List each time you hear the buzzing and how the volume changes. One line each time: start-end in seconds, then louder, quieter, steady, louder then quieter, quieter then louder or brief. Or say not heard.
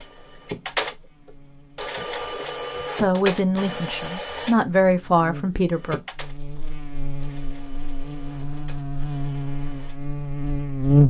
0.0-11.0 louder.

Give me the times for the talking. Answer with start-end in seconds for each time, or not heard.
3.0-6.0.